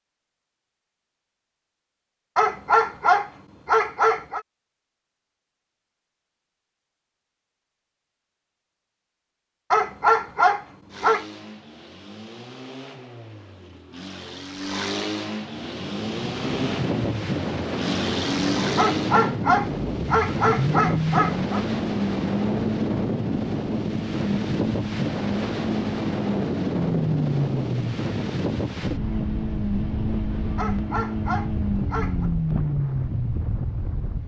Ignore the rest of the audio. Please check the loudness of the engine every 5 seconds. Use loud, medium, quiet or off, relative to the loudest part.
off, off, medium, loud, loud, loud, loud.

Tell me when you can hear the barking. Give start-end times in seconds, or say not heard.
2.4-4.4, 9.7-11.2, 18.8-21.6, 30.6-32.3.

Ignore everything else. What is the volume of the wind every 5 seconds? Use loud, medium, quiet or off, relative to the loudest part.
off, off, off, loud, loud, loud, medium.